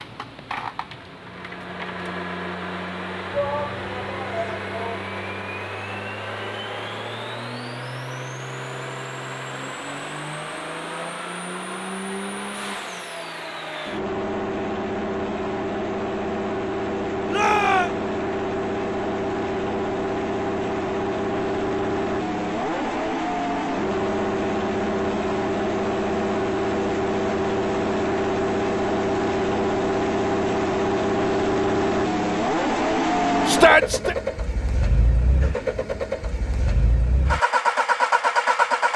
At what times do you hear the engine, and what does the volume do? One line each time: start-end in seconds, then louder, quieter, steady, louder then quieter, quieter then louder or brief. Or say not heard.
0.0-38.9 louder.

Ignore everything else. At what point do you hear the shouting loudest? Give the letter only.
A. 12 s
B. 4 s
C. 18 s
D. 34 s
D.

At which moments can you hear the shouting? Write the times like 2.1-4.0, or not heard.
3.3-5.0, 17.2-17.9, 33.5-34.1.